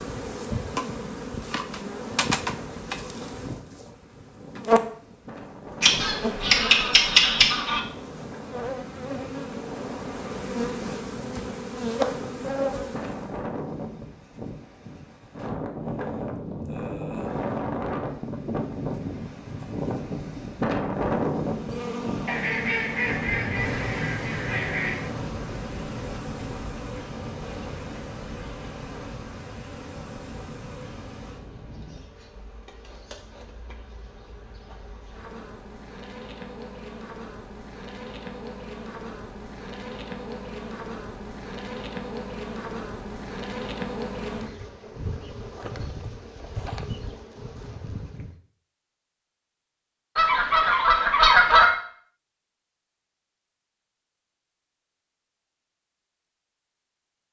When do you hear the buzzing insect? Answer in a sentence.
You can hear the buzzing insect from 0.0 to 13.4 s and from 21.4 to 48.4 s.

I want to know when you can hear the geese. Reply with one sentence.
The geese can be heard from 5.8 to 7.8 s, from 22.2 to 25.1 s and from 50.1 to 51.7 s.